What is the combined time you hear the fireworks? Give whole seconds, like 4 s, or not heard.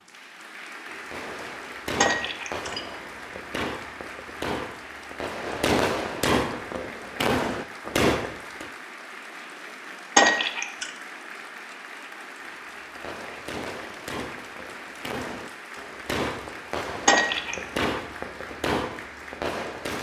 15 s.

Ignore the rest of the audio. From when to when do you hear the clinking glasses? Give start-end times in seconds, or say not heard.
2.0-2.8, 10.2-10.9, 17.1-17.6.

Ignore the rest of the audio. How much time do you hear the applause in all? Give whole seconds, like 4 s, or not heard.
20 s.